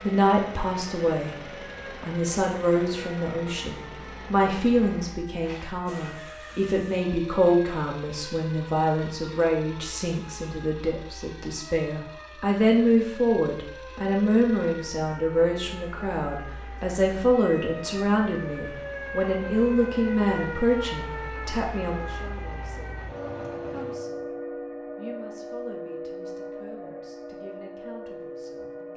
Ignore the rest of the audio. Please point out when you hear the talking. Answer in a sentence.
The talking can be heard from 0.0 to 1.4 s, from 2.0 to 23.1 s, from 23.6 to 24.3 s and from 24.9 to 28.9 s.